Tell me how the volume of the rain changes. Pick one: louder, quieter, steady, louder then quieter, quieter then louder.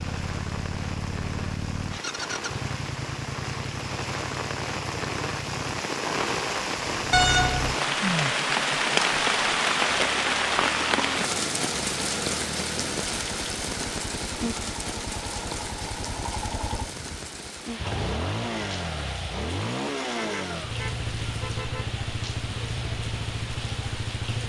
louder then quieter.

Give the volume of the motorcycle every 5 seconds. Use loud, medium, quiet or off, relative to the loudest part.
loud, medium, medium, loud, loud.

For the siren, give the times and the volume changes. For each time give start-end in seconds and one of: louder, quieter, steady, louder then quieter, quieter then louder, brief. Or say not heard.
not heard.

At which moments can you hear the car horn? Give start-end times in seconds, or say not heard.
7.1-7.8, 20.1-21.9.